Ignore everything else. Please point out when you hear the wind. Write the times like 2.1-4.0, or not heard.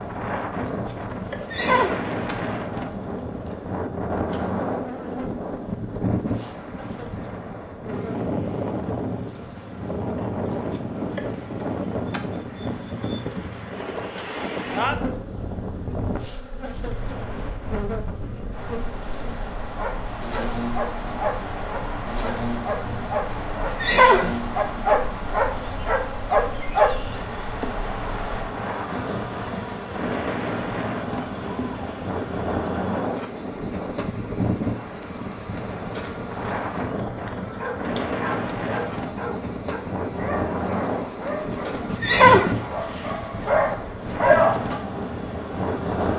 0.0-46.1.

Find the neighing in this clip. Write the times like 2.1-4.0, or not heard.
1.0-2.0, 23.3-24.4, 41.5-43.2.